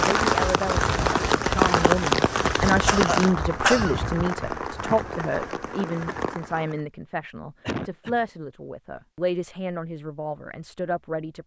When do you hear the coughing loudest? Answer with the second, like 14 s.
4 s.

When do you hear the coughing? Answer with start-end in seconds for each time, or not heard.
2.9-4.0, 7.6-8.2.